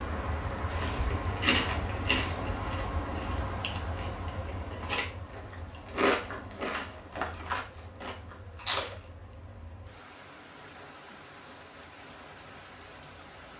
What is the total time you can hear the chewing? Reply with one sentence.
The chewing can be heard for 8 seconds in total.